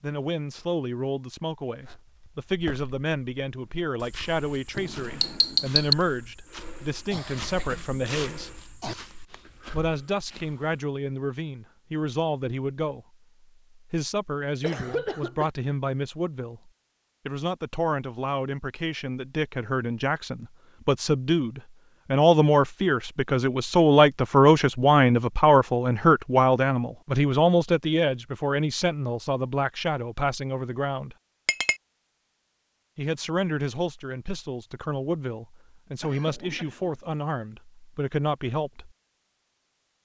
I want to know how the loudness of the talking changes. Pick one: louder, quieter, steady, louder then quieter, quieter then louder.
louder then quieter.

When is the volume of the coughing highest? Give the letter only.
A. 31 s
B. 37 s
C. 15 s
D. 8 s
C.